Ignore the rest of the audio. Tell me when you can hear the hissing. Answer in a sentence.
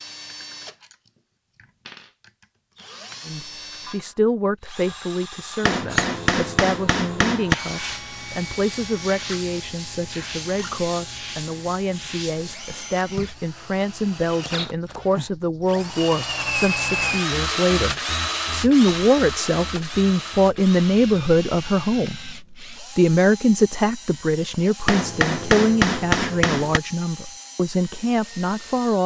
The hissing can be heard from 7.5 to 12.6 s.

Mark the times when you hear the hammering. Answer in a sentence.
You can hear the hammering from 5.6 to 7.5 s and from 24.9 to 26.8 s.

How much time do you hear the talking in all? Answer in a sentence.
You can hear the talking for 26 seconds altogether.